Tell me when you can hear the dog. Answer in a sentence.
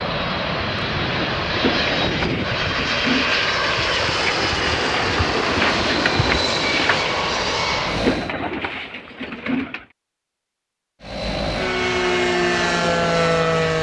You can't hear the dog here.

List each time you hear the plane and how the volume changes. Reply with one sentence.
The plane can be heard from 0.0 to 8.3 s, at a steady volume; and briefly from 11.0 to 13.7 s.